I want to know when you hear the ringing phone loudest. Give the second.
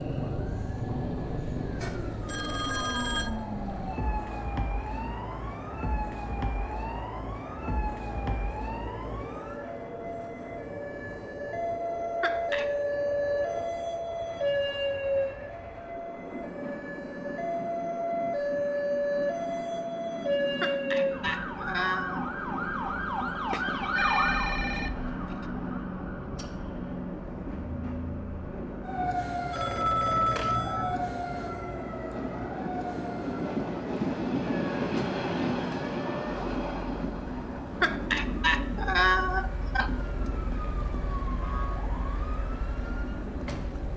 30 s.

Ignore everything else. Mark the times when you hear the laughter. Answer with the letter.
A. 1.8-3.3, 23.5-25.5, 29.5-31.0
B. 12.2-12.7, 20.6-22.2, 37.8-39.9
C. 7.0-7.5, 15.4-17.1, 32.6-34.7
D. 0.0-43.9
B.